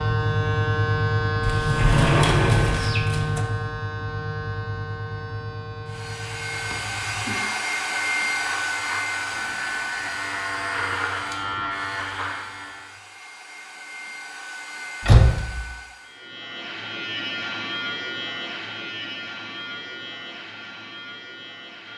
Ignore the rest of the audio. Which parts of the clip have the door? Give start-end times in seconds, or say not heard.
1.4-3.5, 15.0-15.6.